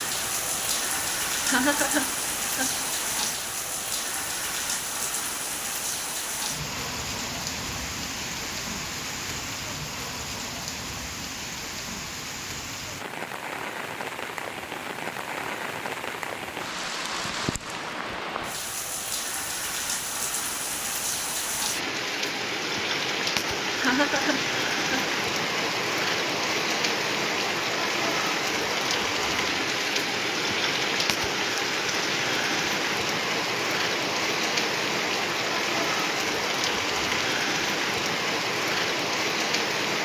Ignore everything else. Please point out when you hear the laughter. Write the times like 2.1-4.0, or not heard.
1.4-2.9, 23.8-25.1.